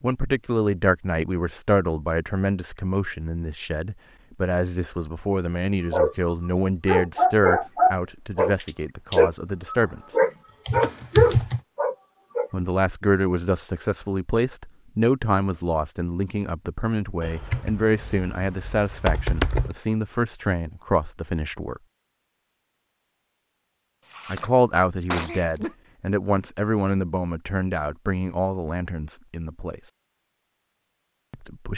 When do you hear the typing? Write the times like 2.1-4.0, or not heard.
9.8-11.6, 17.2-19.8.